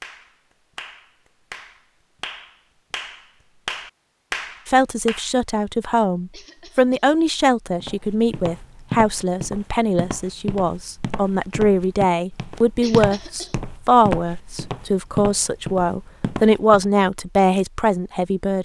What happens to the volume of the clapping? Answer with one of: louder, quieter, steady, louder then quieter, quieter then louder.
louder.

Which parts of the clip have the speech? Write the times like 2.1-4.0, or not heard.
4.7-18.5.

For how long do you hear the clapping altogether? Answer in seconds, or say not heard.
5 s.